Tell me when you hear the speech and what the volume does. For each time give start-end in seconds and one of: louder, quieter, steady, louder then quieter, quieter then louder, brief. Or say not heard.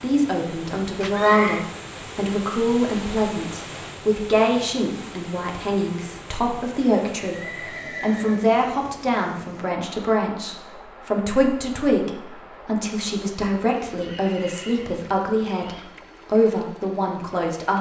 0.0-17.7 steady.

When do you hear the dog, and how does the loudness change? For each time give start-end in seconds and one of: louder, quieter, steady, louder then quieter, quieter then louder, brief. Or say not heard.
not heard.